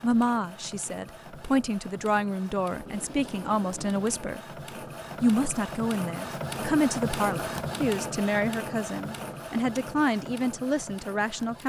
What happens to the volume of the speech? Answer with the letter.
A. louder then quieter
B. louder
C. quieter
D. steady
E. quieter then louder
D.